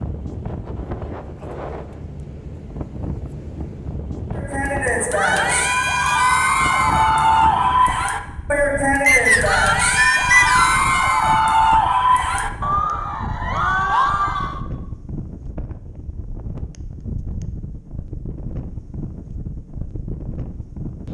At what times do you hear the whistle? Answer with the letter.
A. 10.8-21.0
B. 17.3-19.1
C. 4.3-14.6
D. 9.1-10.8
D.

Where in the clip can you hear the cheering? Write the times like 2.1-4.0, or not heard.
4.3-14.6.